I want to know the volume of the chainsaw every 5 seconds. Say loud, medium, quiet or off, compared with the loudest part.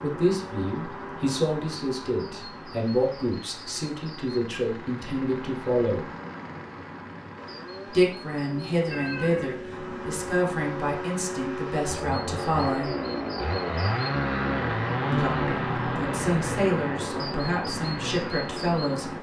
quiet, quiet, loud, loud.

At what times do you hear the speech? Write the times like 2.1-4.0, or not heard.
0.0-6.1, 7.8-12.9, 15.1-19.1.